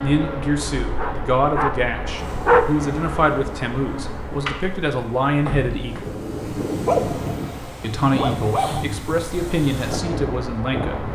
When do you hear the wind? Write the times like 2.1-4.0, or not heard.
2.1-11.1.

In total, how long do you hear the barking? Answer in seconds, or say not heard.
4 s.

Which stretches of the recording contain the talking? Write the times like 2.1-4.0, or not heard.
0.0-6.1, 7.8-11.0.